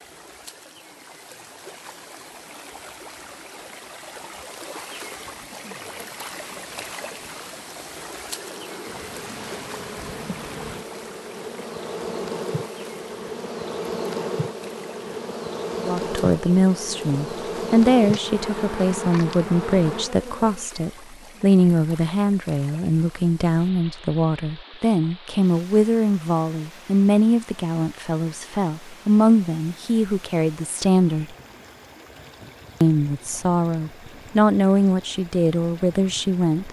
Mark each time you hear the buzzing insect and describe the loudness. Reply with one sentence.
The buzzing insect can be heard from 8.2 to 20.7 s, getting louder.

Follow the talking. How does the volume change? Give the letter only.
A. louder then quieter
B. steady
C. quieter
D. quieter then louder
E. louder
B.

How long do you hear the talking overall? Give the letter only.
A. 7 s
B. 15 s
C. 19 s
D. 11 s
C.